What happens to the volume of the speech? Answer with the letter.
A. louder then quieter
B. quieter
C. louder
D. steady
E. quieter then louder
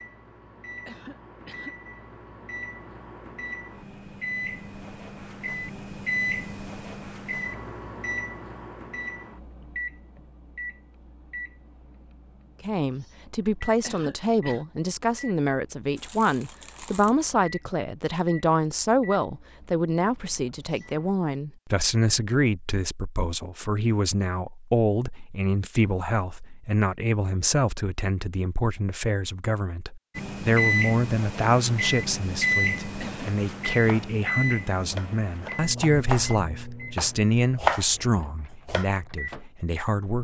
D.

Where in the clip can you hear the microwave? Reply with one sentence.
The microwave can be heard from 0.0 to 21.1 s and from 30.1 to 39.5 s.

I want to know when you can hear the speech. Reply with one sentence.
You can hear the speech from 12.6 to 40.2 s.